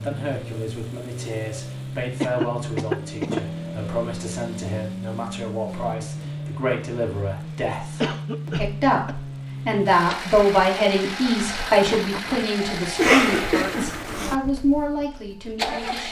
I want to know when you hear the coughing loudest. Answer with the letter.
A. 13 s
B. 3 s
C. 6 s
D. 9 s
A.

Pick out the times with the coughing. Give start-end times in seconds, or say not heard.
2.2-3.4, 8.0-9.2, 12.9-14.3.